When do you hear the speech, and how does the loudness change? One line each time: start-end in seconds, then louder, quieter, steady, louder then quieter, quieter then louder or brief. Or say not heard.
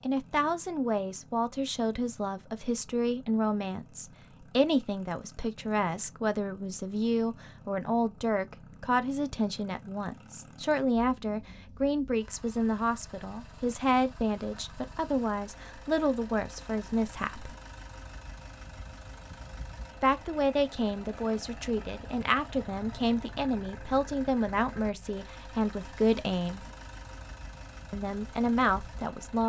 0.0-17.5 steady
20.0-26.6 steady
27.9-29.4 brief.